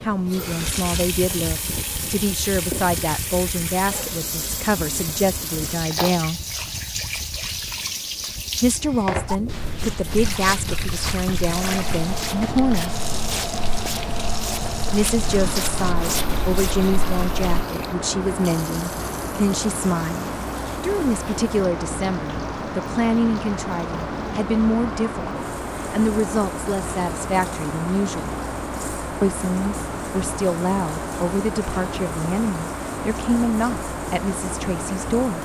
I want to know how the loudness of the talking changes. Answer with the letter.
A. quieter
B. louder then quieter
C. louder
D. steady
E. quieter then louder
D.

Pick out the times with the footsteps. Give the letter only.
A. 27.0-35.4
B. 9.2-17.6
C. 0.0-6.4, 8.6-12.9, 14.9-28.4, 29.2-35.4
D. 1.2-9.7
B.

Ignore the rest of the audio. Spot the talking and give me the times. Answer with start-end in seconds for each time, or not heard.
0.0-6.4, 8.6-12.9, 14.9-28.4, 29.2-35.4.